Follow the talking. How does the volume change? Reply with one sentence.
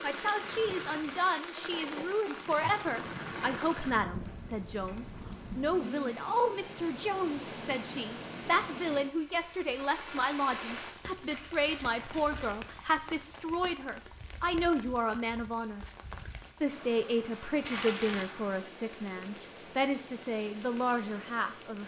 The loudness of the talking stays about the same.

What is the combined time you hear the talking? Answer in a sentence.
The talking can be heard for 21 seconds in total.